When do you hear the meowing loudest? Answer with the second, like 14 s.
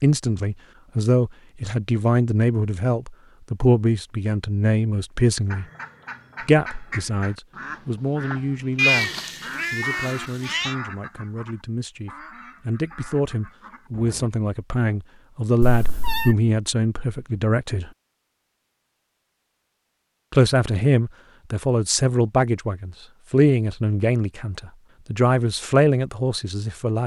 9 s.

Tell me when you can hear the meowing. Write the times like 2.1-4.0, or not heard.
8.8-10.8, 15.6-16.4.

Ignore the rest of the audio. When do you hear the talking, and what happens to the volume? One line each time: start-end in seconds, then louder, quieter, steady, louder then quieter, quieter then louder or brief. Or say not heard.
0.0-5.7 steady
6.4-9.1 brief
9.7-17.9 louder
20.3-27.0 steady.